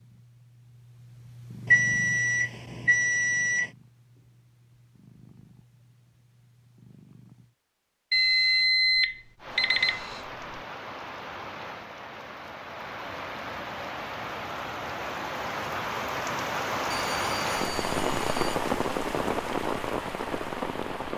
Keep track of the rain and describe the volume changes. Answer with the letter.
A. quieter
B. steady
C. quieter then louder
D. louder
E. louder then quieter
D.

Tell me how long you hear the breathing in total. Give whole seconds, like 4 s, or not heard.
not heard.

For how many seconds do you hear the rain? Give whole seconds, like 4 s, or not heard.
12 s.